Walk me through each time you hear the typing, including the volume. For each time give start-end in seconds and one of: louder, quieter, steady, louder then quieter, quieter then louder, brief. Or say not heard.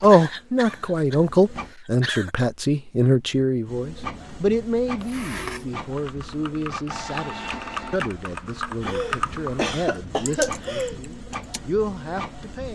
5.8-11.6 louder.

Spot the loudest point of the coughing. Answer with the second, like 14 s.
10 s.